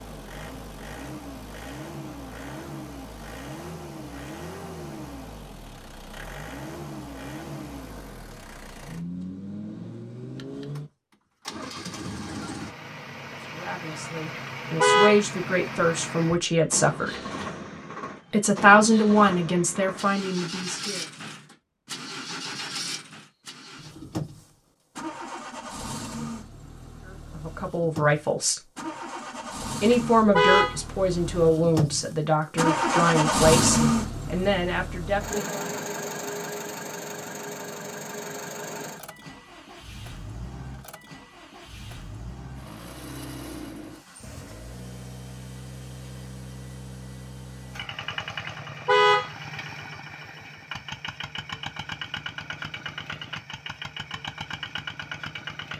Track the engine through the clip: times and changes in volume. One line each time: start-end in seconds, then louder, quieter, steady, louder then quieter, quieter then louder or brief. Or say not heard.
0.0-55.7 louder then quieter.